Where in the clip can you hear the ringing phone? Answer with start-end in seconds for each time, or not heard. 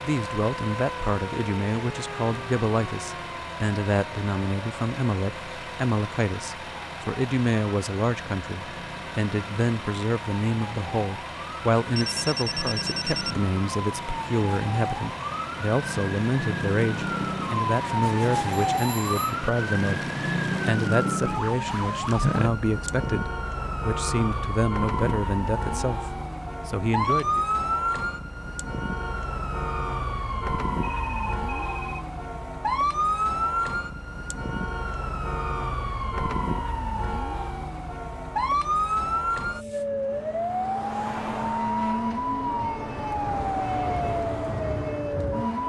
11.9-13.3, 18.5-19.4, 30.8-32.1.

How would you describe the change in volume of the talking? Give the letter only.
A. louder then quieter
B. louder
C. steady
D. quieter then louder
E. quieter
C.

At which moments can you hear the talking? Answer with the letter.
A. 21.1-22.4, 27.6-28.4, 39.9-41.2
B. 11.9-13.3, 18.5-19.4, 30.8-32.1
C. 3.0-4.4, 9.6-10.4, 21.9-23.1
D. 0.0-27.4
D.